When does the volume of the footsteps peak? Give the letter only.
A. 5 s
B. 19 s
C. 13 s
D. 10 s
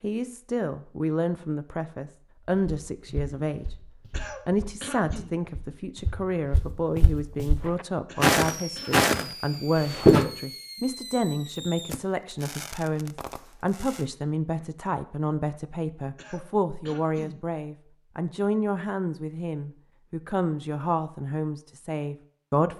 D.